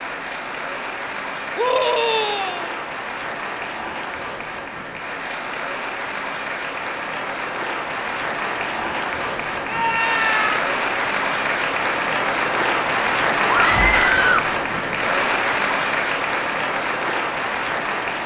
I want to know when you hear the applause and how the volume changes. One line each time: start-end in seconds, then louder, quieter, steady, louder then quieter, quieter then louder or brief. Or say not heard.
0.0-18.2 louder.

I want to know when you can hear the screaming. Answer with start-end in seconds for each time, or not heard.
1.6-2.7, 9.7-10.7, 13.4-14.5.